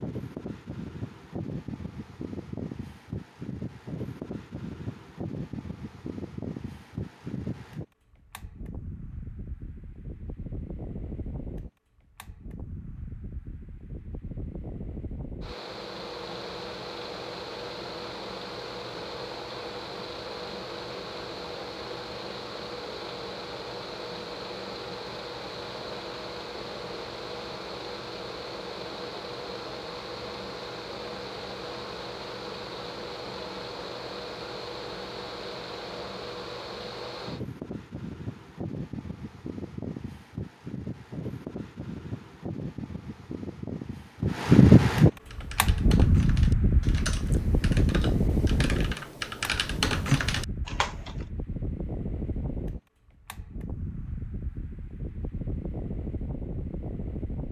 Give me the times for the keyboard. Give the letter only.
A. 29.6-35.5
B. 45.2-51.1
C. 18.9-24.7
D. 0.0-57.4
B.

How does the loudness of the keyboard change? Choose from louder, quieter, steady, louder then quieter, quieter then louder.
louder.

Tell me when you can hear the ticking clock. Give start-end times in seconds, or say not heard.
not heard.